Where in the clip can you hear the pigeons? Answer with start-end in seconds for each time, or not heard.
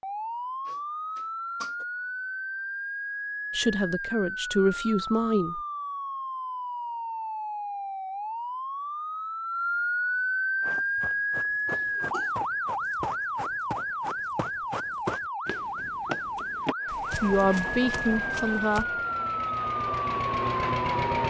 not heard.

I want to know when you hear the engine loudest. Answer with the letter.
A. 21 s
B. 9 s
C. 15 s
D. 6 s
A.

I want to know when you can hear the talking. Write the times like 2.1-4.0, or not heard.
3.5-5.6, 16.9-18.9.